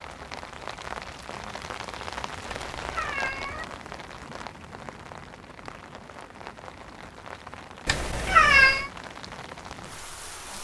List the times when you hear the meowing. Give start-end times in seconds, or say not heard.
2.5-3.6, 7.8-8.9.